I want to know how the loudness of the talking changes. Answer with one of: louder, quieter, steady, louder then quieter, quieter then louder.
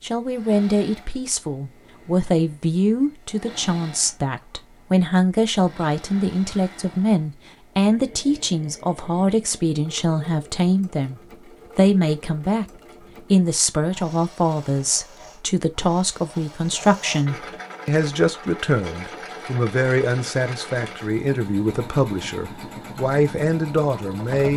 steady.